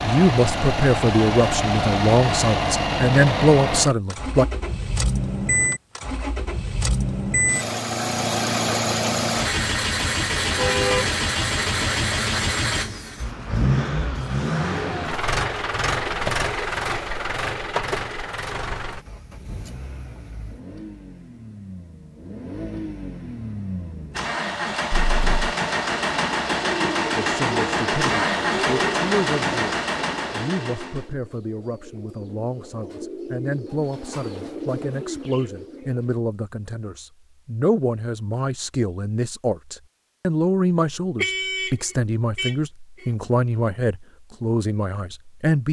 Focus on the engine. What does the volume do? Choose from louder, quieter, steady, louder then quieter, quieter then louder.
quieter then louder.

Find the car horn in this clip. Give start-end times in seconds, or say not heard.
10.6-11.2, 24.9-25.5, 41.1-43.0.